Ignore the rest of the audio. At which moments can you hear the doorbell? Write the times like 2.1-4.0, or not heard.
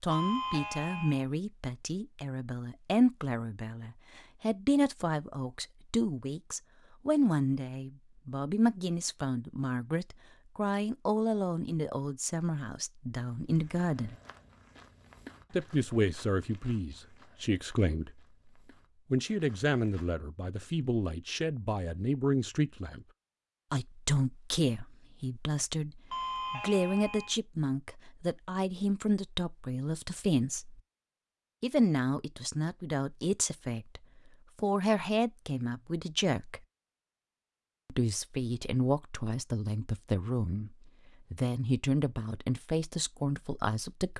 0.1-1.2, 26.1-27.4.